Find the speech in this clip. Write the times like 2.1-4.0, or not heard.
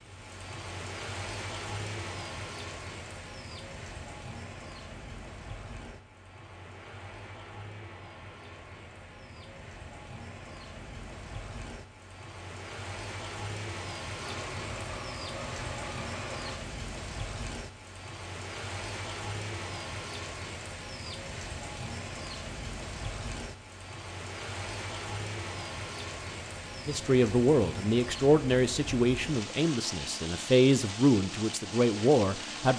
26.9-32.7.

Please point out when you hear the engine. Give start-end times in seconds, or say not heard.
14.2-16.6.